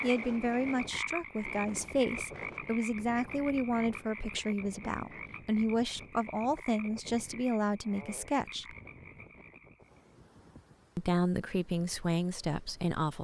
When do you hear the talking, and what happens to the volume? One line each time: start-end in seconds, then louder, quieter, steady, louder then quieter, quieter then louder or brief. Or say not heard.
0.0-8.8 steady
10.9-13.1 brief.